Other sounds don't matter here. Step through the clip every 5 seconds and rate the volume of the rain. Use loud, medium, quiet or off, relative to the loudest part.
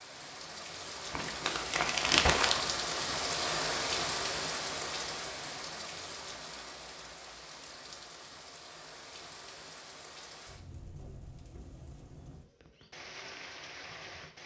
loud, medium, quiet.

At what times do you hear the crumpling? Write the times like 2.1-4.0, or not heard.
1.1-2.7.